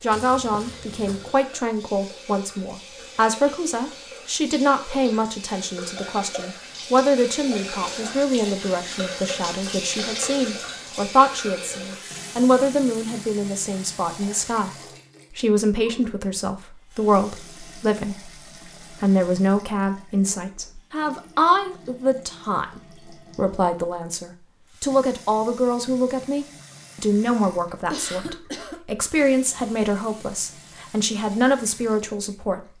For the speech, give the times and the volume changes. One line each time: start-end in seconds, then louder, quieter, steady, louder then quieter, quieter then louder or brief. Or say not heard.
0.0-32.7 steady.